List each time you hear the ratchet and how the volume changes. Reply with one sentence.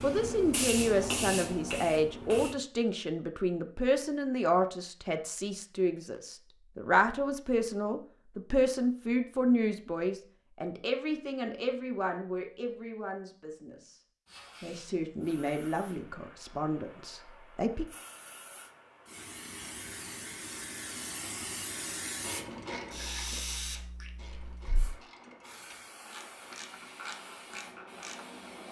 You can hear the ratchet from 22.2 to 28.2 s, getting quieter then louder.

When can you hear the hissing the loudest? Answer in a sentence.
The loudest moment of the hissing is at 1 second.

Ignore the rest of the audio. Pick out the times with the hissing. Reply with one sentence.
The hissing can be heard from 0.0 to 2.5 s and from 14.2 to 28.6 s.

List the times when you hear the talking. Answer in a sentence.
You can hear the talking from 0.0 to 14.0 s and from 14.6 to 17.9 s.